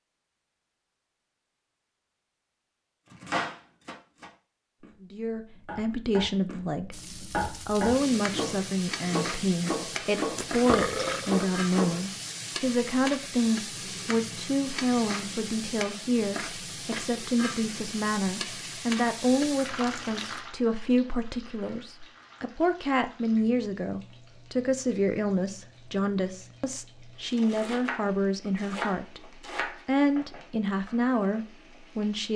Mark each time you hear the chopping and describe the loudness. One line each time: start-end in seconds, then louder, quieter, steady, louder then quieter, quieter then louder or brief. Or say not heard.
3.1-12.3 louder
27.3-29.9 brief.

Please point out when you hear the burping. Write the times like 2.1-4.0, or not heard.
10.3-11.6.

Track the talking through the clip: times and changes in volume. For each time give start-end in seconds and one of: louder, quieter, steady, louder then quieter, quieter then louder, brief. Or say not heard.
5.0-7.0 brief
7.7-32.3 steady.